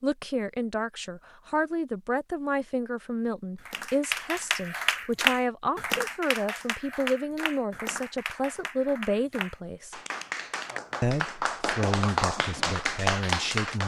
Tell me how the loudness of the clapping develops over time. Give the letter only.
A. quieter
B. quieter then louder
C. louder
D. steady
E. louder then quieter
B.